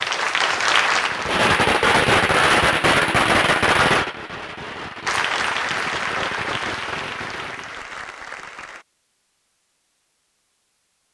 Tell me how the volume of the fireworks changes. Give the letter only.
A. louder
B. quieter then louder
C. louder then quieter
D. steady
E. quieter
E.